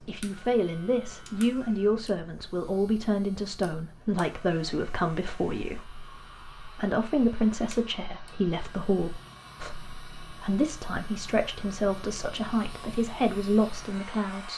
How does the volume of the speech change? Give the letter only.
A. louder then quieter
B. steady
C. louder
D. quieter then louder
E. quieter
B.